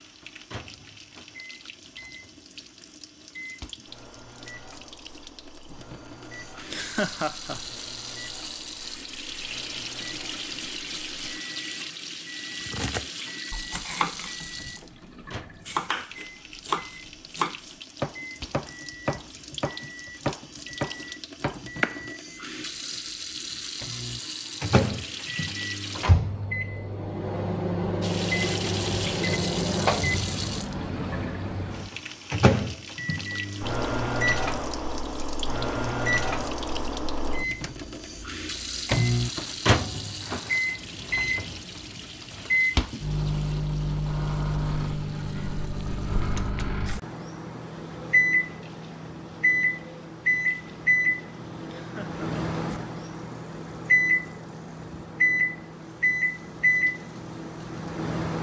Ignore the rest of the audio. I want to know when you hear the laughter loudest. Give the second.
7 s.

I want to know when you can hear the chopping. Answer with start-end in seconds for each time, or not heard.
12.7-22.1.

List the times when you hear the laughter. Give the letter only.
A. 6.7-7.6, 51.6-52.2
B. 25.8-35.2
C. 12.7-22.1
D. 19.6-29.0
A.